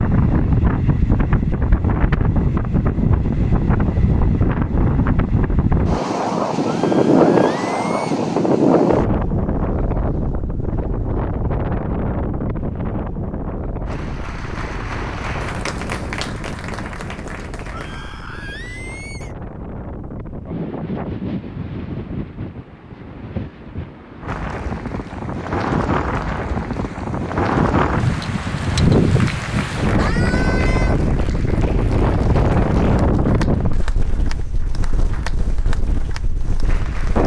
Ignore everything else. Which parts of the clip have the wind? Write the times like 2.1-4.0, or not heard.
0.0-37.2.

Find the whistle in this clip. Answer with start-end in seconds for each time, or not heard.
not heard.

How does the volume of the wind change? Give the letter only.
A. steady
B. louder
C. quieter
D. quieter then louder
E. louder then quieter
D.